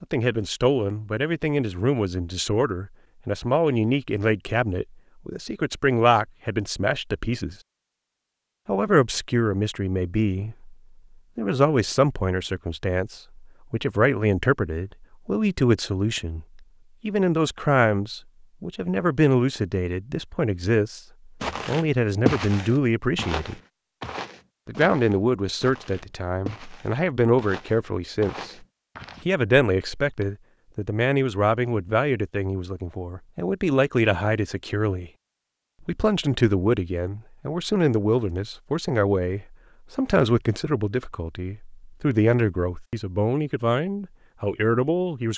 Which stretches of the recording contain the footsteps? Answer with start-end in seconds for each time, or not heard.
21.4-30.1.